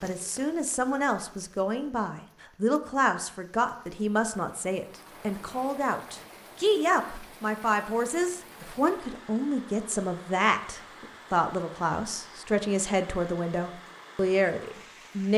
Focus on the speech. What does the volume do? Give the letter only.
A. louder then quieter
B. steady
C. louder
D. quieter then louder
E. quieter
B.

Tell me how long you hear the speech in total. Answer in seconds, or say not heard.
15 s.